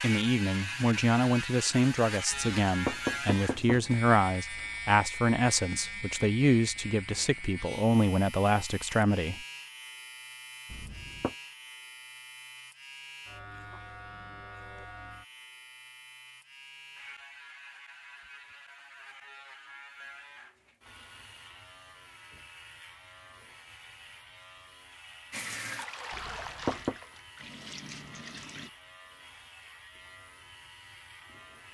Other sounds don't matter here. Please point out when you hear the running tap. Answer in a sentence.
The running tap can be heard from 25.3 to 28.7 s.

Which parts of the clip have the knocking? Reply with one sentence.
You can hear the knocking from 2.3 to 3.9 s, from 10.7 to 11.3 s and from 26.1 to 26.9 s.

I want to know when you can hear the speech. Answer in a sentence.
The speech can be heard from 0.0 to 9.4 s.